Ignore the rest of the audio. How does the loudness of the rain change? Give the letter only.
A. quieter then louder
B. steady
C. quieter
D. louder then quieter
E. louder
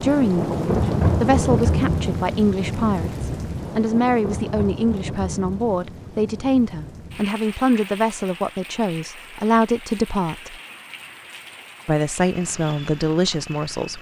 C.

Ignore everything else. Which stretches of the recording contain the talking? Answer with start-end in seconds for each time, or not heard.
0.0-10.6, 11.8-13.9.